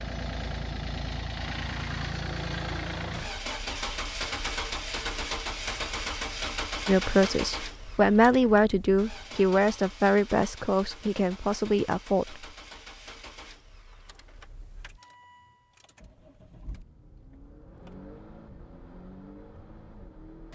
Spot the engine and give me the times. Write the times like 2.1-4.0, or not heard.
0.0-20.5.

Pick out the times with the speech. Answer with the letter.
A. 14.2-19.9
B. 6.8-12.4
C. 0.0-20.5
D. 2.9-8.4
B.